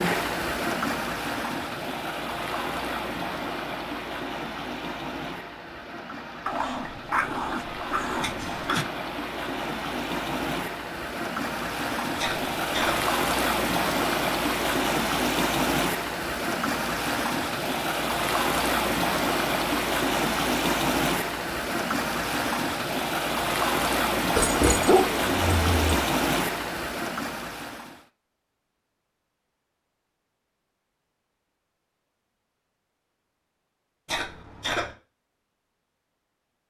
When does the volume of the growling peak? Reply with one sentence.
The volume of the growling peaks at 25 seconds.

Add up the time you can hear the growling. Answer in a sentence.
You can hear the growling for 4 seconds altogether.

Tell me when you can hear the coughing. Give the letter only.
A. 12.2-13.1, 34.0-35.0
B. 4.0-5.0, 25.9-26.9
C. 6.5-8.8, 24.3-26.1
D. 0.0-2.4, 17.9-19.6
A.